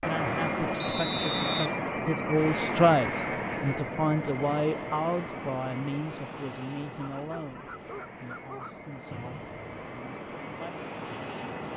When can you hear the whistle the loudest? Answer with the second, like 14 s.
1 s.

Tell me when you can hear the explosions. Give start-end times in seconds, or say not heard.
not heard.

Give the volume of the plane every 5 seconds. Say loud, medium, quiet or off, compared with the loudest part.
loud, medium, medium.